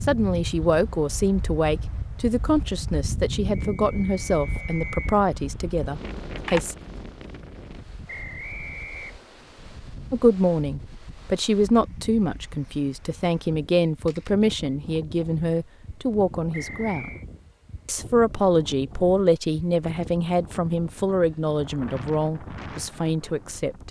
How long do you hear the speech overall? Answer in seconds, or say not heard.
20 s.